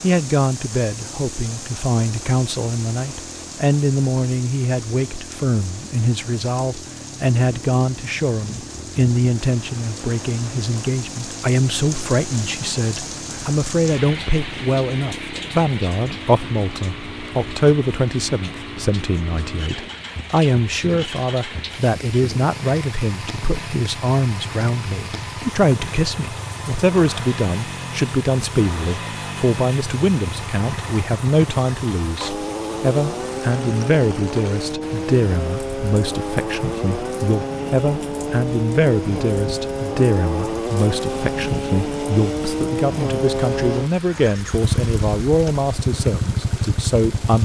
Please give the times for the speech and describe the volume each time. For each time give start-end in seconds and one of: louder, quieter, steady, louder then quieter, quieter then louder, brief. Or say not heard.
0.0-47.4 steady.